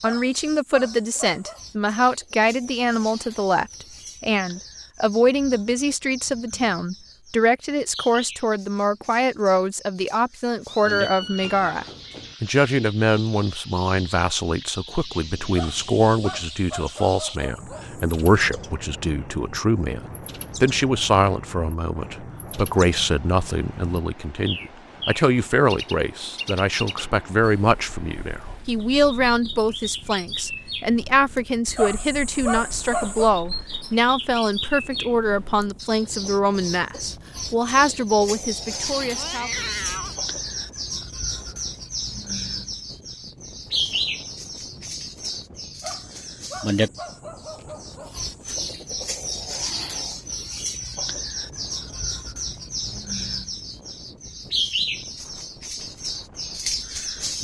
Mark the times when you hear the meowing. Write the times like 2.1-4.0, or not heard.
10.7-12.3, 39.1-40.1.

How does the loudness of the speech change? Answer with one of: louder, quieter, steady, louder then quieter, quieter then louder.
steady.